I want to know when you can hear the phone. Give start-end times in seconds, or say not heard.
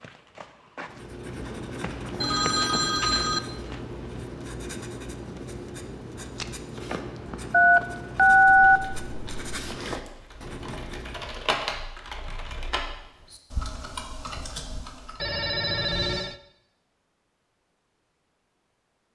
2.2-3.4, 7.5-8.8, 15.2-16.4.